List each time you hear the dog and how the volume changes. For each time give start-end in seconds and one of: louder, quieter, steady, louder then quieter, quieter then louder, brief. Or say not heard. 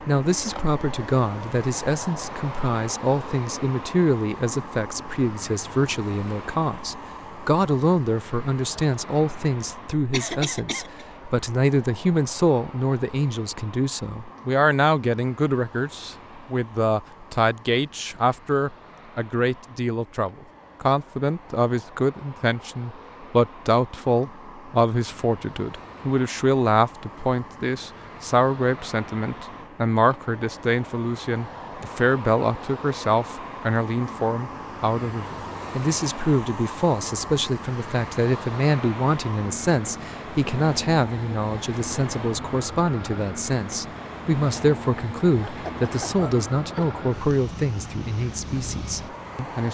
not heard.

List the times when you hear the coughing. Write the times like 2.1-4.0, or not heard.
10.1-11.1, 45.5-46.9.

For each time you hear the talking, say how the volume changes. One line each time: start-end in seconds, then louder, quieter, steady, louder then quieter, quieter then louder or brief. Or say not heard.
0.1-49.7 steady.